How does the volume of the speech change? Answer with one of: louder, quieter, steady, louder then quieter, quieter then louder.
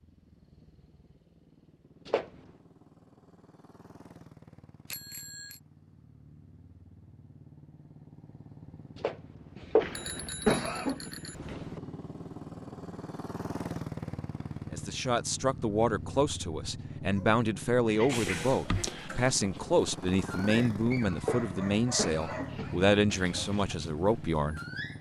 steady.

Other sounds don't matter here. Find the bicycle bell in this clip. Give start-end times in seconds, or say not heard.
4.8-5.6, 9.8-11.8, 18.1-19.3.